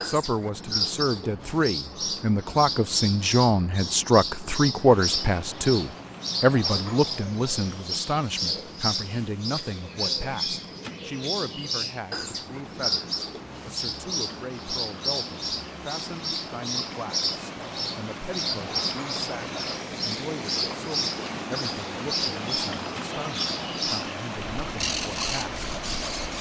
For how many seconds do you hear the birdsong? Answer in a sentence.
You can hear the birdsong for 26 seconds altogether.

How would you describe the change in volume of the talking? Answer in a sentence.
The volume of the talking goes down.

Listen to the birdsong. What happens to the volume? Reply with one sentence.
The volume of the birdsong stays about the same.